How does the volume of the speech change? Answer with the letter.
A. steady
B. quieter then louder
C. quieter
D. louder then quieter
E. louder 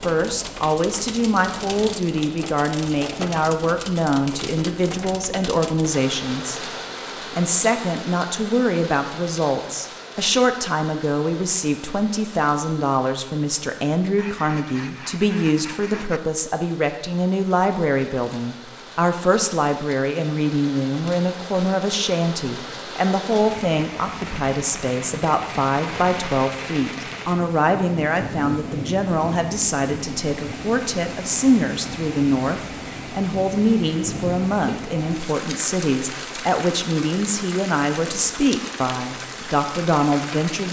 A.